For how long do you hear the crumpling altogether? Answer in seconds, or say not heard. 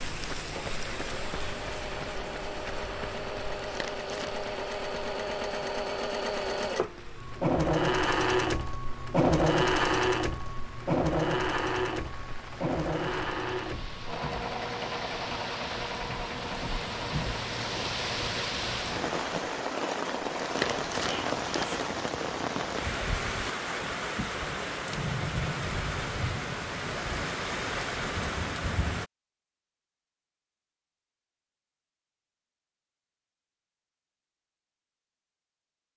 2 s.